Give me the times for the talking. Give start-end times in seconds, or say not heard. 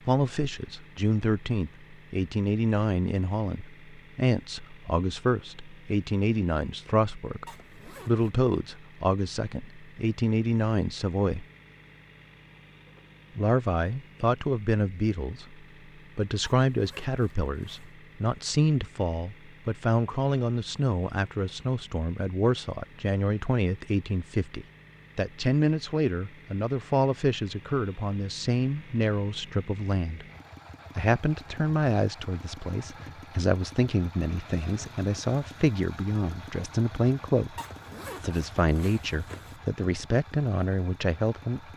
0.1-11.4, 13.3-15.6, 16.1-30.2, 30.9-37.5, 38.2-41.7.